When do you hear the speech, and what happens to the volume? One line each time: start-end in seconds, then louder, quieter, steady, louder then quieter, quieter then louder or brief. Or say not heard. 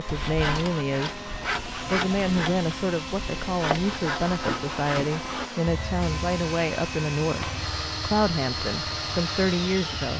0.0-10.1 steady.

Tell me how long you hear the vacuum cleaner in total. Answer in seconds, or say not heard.
10 s.